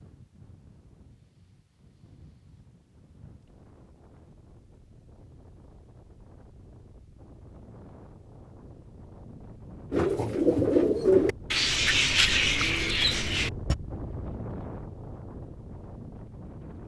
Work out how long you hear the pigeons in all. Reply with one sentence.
You can hear the pigeons for 4 seconds altogether.